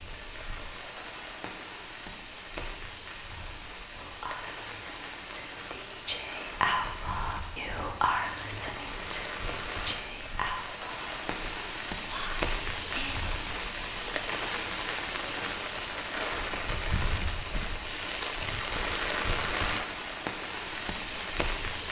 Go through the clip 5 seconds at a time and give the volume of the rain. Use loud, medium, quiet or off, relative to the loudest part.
medium, medium, loud, loud, loud.